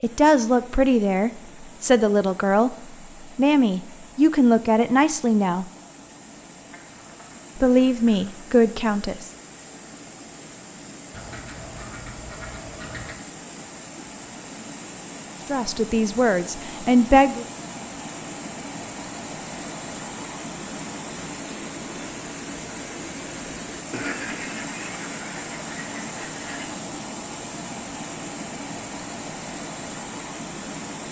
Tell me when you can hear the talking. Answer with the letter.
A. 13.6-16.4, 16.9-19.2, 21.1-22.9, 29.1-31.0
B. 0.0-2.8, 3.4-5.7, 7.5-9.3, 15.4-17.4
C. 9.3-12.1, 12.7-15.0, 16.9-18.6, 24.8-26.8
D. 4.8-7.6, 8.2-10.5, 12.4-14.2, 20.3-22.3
B.